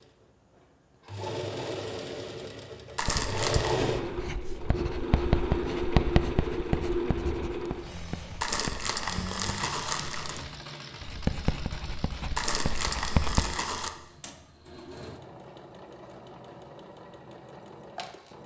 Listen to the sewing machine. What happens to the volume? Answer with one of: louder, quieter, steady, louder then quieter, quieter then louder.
quieter.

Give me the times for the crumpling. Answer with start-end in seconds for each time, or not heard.
3.0-3.8, 8.4-10.4, 12.3-13.9.